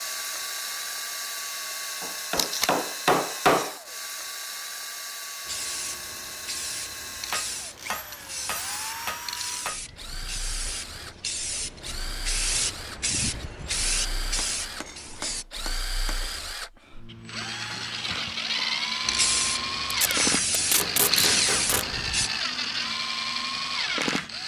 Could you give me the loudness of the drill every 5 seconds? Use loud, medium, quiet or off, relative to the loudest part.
medium, medium, medium, loud, loud.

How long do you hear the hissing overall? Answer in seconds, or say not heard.
13 s.